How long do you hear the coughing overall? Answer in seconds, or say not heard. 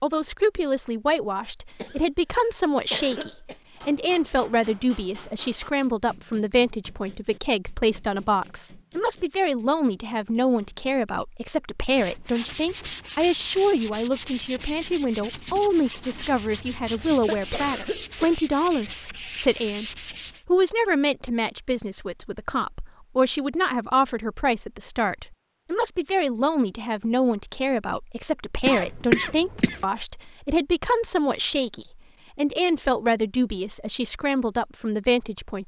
5 s.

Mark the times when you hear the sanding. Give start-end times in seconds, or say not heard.
11.8-20.4.